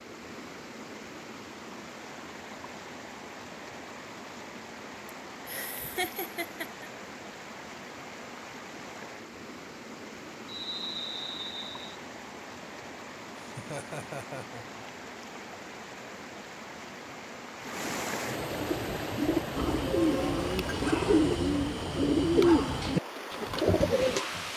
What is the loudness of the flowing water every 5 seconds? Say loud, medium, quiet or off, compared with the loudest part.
medium, medium, medium, loud, loud.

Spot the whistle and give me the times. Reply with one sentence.
You can hear the whistle from 10.4 to 11.9 s.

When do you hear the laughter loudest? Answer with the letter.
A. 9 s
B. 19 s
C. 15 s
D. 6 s
D.